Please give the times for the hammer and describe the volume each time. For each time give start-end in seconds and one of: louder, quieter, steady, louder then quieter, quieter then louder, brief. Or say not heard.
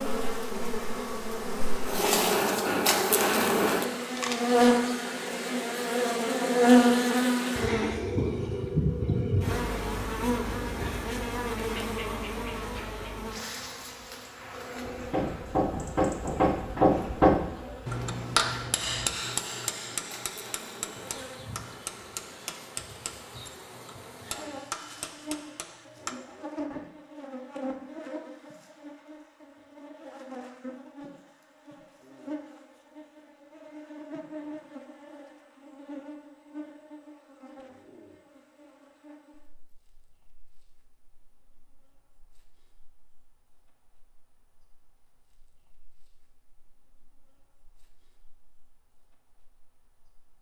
14.8-26.1 quieter.